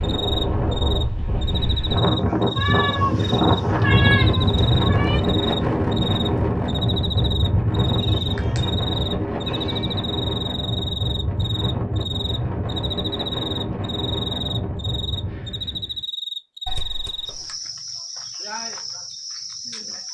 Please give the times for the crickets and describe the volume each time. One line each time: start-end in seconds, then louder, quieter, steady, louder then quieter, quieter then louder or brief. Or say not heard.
0.0-20.1 steady.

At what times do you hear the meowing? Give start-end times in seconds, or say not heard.
2.5-5.2, 8.0-8.7, 9.4-9.9, 16.6-17.6.